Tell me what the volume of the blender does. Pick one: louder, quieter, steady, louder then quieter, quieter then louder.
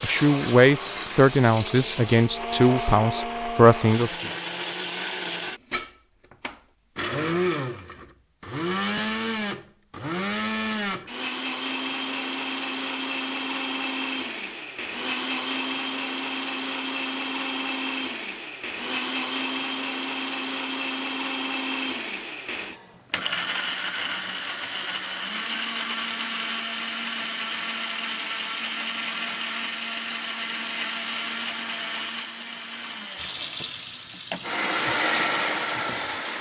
steady.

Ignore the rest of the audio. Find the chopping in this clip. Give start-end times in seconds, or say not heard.
not heard.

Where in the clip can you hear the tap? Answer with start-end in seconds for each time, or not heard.
0.0-3.0, 33.1-36.3.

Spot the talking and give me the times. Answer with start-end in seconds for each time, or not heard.
0.0-4.2.